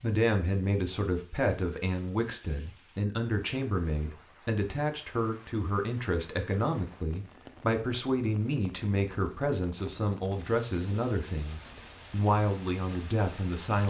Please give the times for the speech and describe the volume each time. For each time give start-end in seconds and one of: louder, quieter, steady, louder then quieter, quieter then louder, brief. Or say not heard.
0.0-13.8 steady.